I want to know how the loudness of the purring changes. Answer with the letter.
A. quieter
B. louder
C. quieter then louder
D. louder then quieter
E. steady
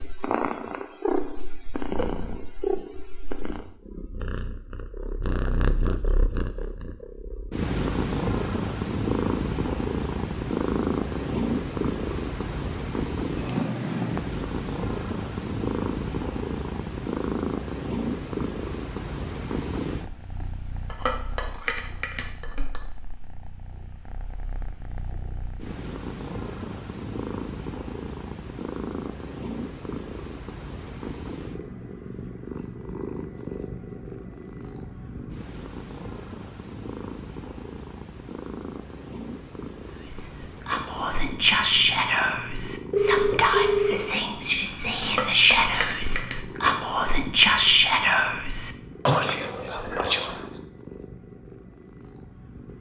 A.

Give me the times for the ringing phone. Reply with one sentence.
The ringing phone can be heard from 42.9 to 44.0 s.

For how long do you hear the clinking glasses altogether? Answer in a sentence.
The clinking glasses can be heard for 3 seconds in total.